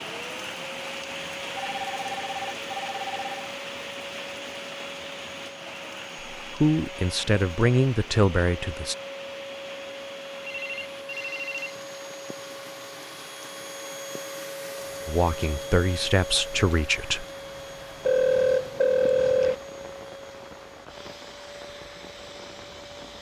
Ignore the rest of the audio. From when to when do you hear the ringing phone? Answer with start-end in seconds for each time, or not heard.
1.6-3.5, 10.4-11.8, 18.1-19.6.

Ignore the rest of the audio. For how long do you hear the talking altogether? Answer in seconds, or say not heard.
5 s.